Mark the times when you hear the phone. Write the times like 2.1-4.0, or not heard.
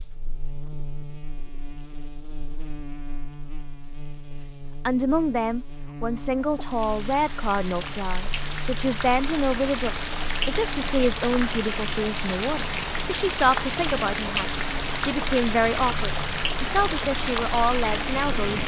not heard.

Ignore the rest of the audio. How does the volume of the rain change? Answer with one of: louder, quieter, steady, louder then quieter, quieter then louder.
louder.